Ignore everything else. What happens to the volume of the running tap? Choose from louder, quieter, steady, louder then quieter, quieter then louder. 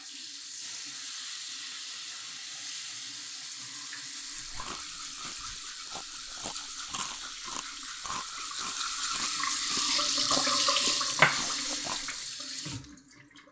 louder.